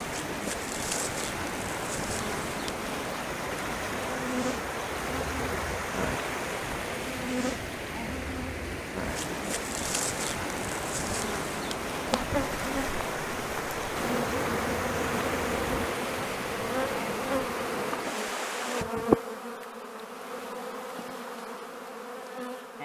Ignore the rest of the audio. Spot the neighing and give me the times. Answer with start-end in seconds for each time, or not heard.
not heard.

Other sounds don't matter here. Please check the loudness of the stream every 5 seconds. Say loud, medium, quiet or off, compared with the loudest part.
loud, loud, loud, loud, off.